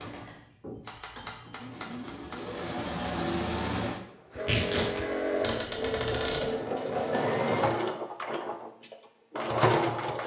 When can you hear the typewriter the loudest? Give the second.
6 s.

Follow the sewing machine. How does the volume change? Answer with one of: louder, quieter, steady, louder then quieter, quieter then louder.
louder.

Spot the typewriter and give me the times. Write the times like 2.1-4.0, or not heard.
0.8-2.6, 5.4-6.5.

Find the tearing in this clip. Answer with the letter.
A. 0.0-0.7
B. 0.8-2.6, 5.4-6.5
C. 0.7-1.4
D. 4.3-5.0
D.